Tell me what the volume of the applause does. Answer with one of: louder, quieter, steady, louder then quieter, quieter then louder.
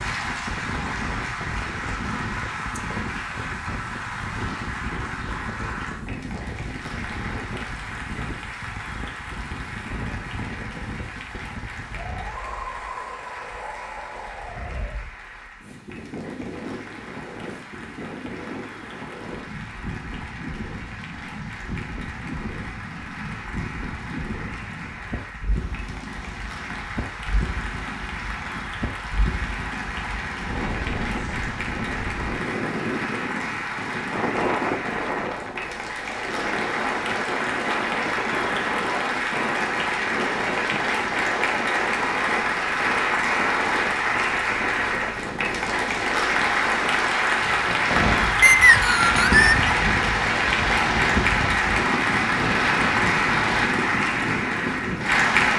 quieter then louder.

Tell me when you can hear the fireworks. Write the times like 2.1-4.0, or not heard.
47.2-53.7.